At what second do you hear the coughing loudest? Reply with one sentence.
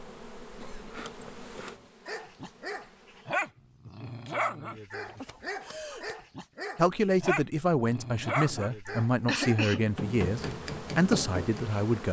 The volume of the coughing peaks at 9 seconds.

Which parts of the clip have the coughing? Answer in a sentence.
You can hear the coughing from 0.6 to 1.9 s, from 5.0 to 6.2 s and from 8.6 to 9.9 s.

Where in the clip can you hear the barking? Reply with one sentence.
The barking can be heard from 2.0 to 9.7 s.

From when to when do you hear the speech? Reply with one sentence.
You can hear the speech from 6.8 to 12.0 s.